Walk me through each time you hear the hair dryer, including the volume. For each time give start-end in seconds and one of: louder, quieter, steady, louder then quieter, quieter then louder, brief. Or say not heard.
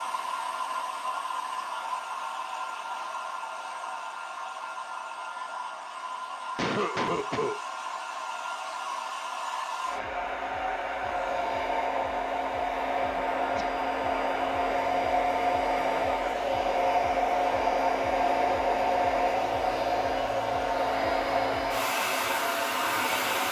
0.0-23.4 louder.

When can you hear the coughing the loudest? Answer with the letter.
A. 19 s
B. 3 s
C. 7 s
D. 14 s
C.